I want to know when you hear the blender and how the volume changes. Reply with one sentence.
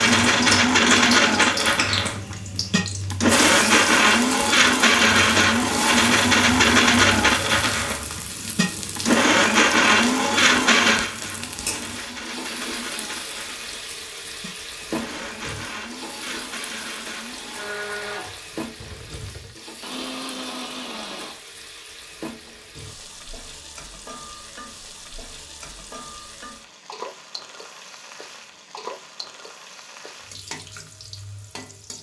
You can hear the blender from 0.0 to 21.4 s, getting quieter.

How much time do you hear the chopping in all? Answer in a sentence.
The chopping can't be heard in this clip.